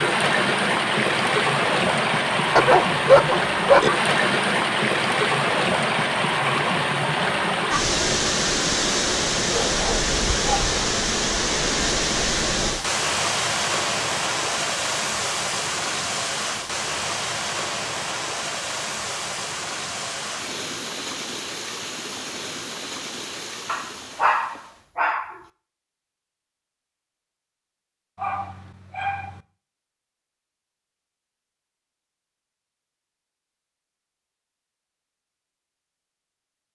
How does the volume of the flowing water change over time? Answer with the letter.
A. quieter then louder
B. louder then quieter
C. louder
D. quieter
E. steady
D.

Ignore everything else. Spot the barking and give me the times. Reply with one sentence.
You can hear the barking from 2.5 to 3.9 s, from 9.7 to 10.7 s, from 23.6 to 25.4 s and from 28.1 to 29.4 s.